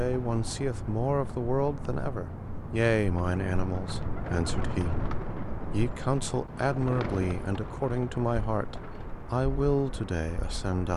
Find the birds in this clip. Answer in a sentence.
The birds can be heard from 0.0 to 10.9 s.